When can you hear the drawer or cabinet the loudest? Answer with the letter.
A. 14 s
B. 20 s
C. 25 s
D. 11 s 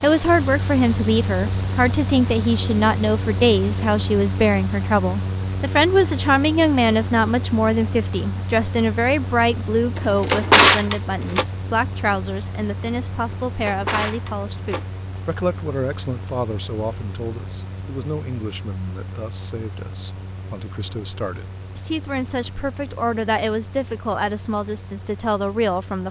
D.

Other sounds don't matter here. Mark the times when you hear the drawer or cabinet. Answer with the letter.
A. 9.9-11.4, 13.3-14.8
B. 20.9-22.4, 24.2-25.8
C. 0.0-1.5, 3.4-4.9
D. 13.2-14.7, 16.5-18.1
A.